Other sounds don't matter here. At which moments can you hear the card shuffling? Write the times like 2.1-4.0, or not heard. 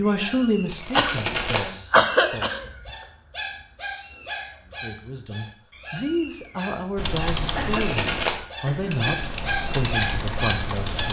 0.7-1.7, 7.6-8.4.